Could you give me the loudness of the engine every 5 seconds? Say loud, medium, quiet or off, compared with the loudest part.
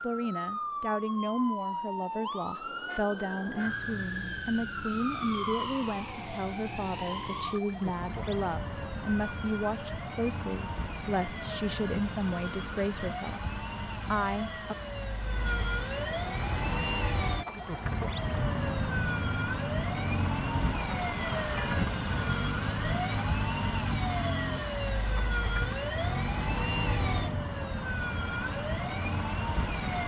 off, off, off, loud, loud, loud.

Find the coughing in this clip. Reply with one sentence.
The coughing can't be heard in this clip.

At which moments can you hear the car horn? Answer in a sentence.
The car horn can be heard from 2.9 to 3.8 s and from 20.7 to 21.8 s.